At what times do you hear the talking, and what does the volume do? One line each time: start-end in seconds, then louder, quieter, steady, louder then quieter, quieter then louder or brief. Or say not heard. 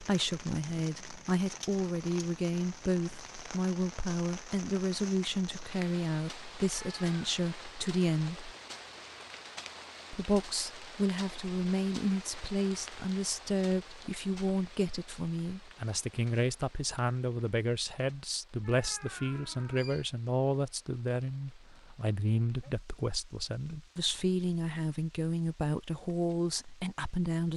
0.0-8.5 steady
10.1-27.5 steady.